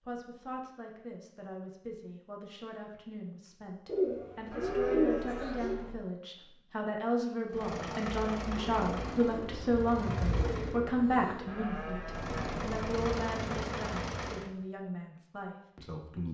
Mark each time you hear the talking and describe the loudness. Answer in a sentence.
You can hear the talking from 0.0 to 16.2 s, getting louder then quieter.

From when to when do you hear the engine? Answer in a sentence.
You can hear the engine from 7.5 to 10.8 s and from 12.1 to 14.5 s.